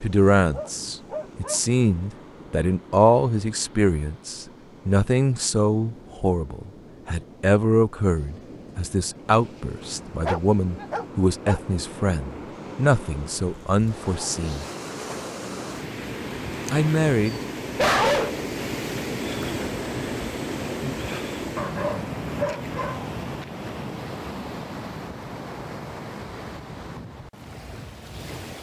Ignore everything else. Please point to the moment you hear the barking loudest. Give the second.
18 s.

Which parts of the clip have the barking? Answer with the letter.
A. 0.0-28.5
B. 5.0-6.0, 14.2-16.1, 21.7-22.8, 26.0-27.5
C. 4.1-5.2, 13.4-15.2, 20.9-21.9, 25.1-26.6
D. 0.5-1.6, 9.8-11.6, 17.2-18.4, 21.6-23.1
D.